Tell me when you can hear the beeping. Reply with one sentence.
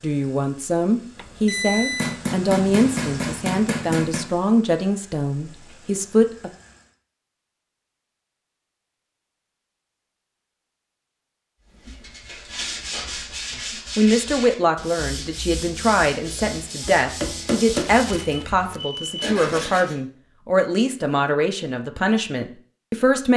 The beeping can be heard from 1.1 to 2.2 s and from 17.9 to 19.4 s.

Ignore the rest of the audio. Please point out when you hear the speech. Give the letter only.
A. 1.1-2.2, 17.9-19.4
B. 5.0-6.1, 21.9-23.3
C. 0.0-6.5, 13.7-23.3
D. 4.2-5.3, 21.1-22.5
C.